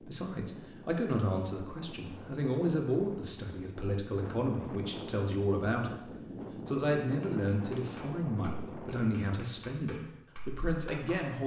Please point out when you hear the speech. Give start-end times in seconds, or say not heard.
0.0-6.0, 6.7-11.4.